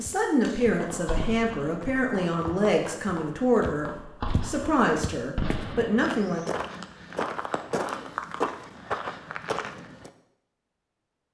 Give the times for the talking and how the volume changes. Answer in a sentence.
The talking can be heard from 0.0 to 6.4 s, at a steady volume.